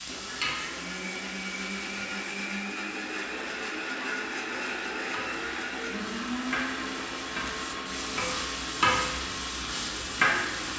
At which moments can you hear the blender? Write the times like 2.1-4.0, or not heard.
0.0-10.7.